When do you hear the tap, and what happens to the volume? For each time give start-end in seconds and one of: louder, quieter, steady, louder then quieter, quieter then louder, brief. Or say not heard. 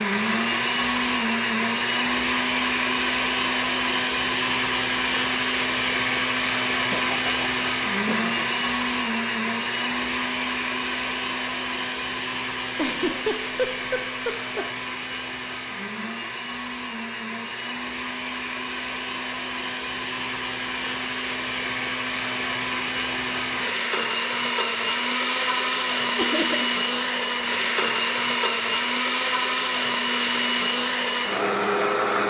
not heard.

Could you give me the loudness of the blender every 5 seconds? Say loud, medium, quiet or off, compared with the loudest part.
loud, loud, medium, medium, loud, loud, loud.